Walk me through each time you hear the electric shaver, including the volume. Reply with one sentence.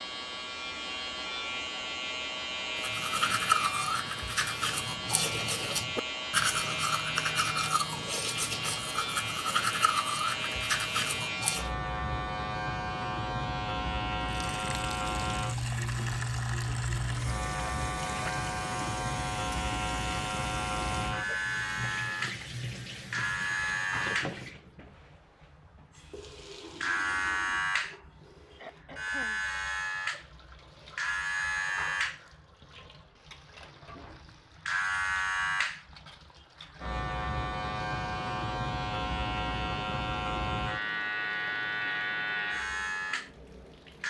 The electric shaver can be heard from 0.0 to 44.0 s, at a steady volume.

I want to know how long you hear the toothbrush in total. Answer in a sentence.
The toothbrush can be heard for 9 seconds in total.